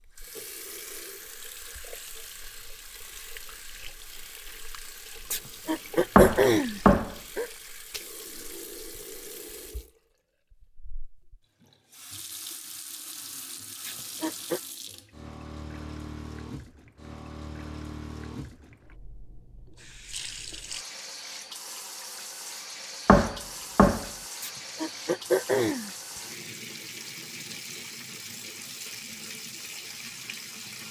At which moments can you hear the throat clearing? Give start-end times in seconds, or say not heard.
5.3-7.5, 13.8-14.6, 24.4-25.9.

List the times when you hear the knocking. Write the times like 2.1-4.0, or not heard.
6.2-7.2, 23.1-24.1.